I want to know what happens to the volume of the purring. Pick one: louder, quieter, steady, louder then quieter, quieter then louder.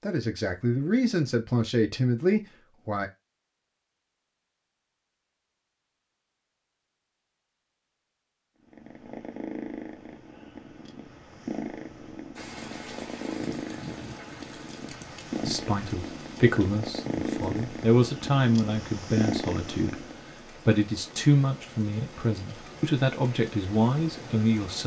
louder.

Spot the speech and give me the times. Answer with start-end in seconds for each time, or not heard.
0.0-3.1, 15.4-24.8.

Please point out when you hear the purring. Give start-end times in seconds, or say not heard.
8.6-20.2.